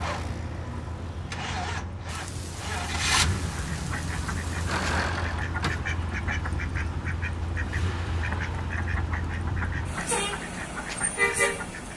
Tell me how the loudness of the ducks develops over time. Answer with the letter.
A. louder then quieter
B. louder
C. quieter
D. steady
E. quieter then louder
D.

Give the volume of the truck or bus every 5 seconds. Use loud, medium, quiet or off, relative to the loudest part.
loud, medium, loud.